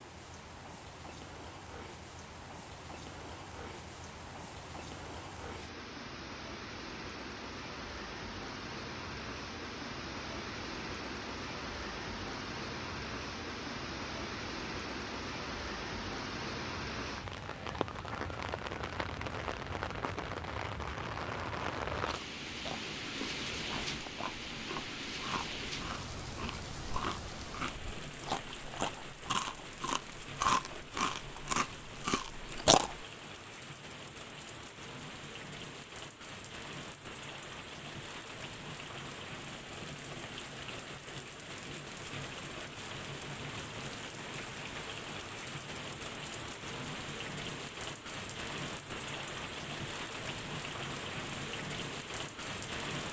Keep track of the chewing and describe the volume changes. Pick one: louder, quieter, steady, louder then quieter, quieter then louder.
louder.